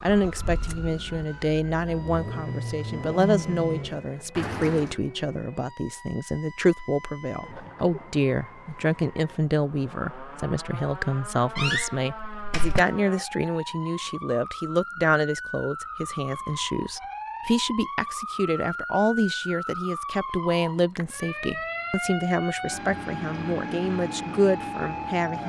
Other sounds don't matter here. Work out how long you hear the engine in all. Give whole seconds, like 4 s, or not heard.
5 s.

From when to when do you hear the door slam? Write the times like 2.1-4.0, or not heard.
11.6-12.8.